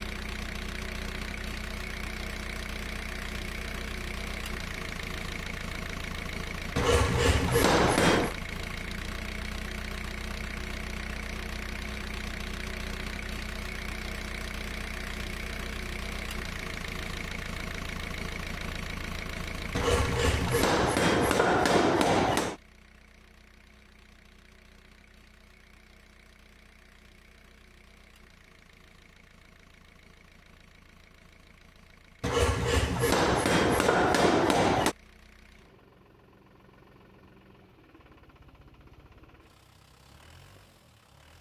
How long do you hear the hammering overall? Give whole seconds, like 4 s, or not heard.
7 s.